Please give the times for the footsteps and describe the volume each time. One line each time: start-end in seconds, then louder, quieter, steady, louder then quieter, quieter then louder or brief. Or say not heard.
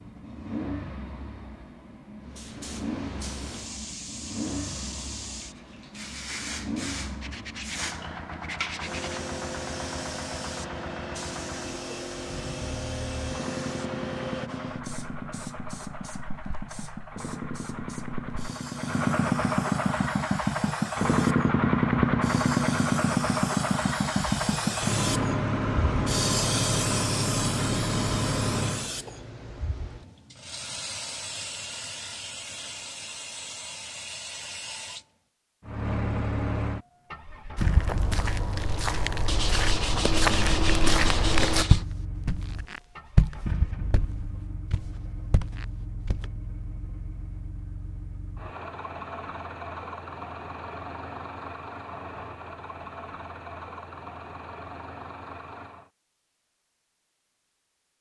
37.5-46.2 louder then quieter.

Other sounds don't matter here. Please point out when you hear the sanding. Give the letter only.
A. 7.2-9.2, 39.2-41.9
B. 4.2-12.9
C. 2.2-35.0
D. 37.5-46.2
A.